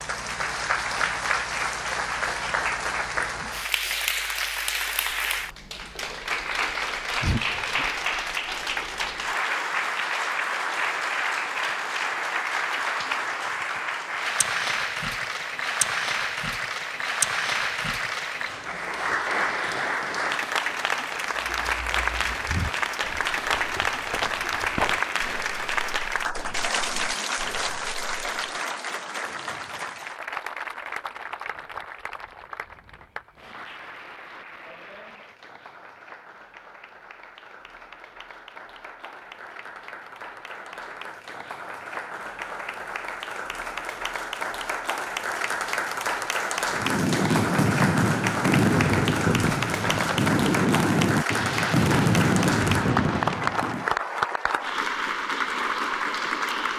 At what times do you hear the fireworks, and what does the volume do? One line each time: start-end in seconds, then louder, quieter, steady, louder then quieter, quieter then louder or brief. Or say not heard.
46.7-53.9 steady.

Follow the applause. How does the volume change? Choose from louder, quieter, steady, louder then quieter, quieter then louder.
quieter then louder.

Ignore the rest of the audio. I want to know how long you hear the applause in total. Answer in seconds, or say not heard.
57 s.